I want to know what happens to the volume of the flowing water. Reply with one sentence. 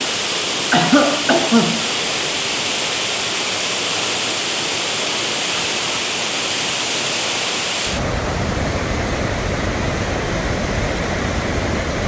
The volume of the flowing water stays about the same.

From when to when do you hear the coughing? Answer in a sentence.
You can hear the coughing from 0.7 to 1.9 s.